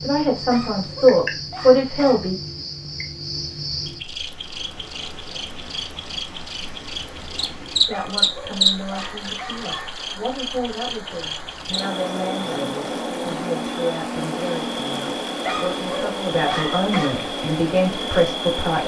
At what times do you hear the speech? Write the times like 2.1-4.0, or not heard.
0.0-2.4, 7.8-18.8.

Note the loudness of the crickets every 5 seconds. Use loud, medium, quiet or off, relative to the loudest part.
medium, loud, loud, loud.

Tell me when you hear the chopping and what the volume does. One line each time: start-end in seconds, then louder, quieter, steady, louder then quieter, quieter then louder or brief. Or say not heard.
not heard.